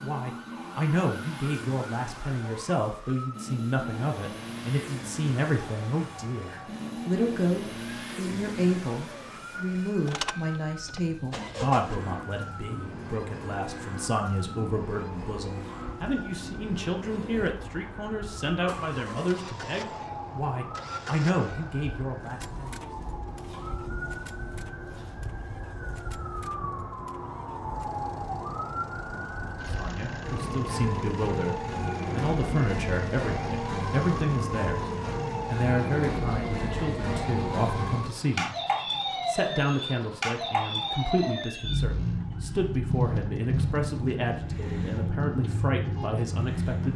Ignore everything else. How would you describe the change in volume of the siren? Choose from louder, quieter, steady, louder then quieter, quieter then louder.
louder.